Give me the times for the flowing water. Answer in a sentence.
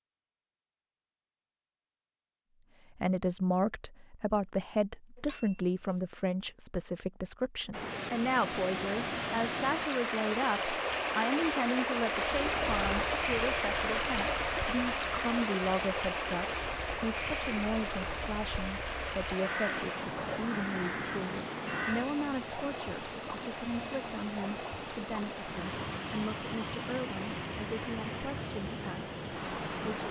You can hear the flowing water from 7.7 to 30.0 s.